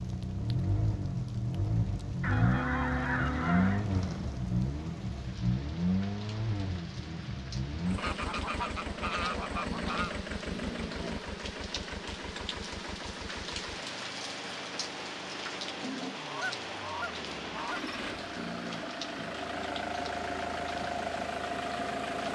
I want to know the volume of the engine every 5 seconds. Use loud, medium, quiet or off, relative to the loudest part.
loud, loud, medium, medium, loud.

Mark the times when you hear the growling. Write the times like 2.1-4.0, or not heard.
3.9-4.5, 9.7-11.3, 18.4-19.4.